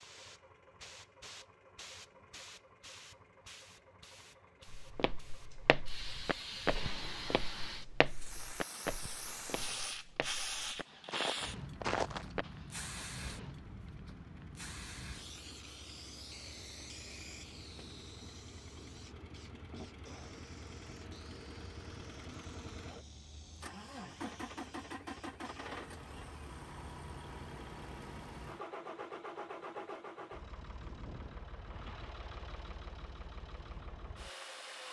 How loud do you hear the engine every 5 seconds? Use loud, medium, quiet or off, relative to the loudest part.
quiet, quiet, medium, medium, loud, loud, loud.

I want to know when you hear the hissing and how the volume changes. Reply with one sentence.
The hissing can be heard from 0.0 to 25.7 s, getting louder then quieter.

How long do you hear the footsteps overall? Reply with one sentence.
You can hear the footsteps for 8 seconds altogether.